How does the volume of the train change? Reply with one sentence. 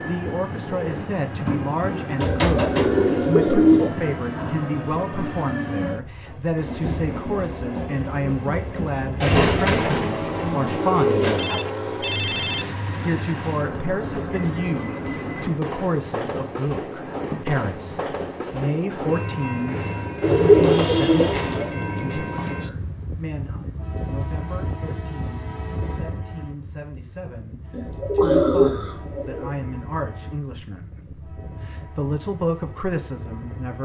The loudness of the train goes down.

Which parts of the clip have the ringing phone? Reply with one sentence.
You can hear the ringing phone from 11.3 to 12.8 s.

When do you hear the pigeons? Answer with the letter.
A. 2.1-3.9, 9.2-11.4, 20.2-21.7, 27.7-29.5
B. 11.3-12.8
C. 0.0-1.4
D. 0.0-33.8
A.